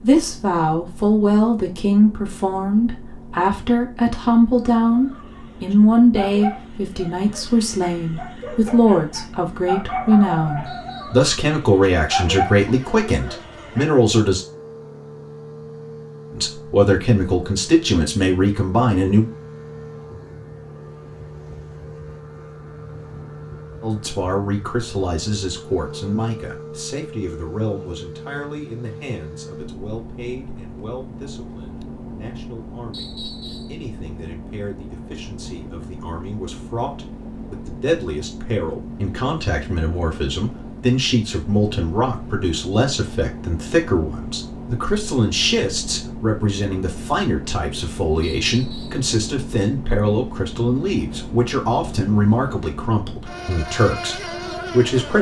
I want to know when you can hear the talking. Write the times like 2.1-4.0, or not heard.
0.0-14.4, 16.4-19.3, 23.8-55.1.